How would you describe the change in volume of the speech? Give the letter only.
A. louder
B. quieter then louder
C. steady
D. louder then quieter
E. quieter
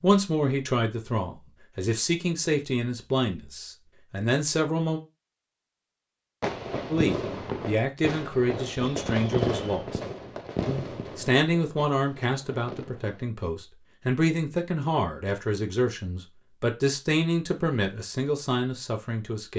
C.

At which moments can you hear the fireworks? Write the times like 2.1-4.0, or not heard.
6.4-13.2.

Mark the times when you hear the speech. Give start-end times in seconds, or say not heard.
0.0-5.0, 6.9-10.0, 10.7-19.5.